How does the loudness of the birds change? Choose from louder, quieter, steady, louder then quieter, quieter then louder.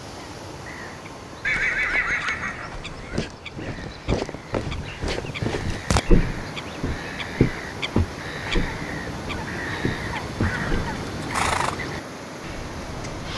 louder.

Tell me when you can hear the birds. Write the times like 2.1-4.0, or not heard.
0.0-13.3.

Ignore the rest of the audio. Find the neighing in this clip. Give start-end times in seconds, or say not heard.
1.4-3.3, 10.4-11.8.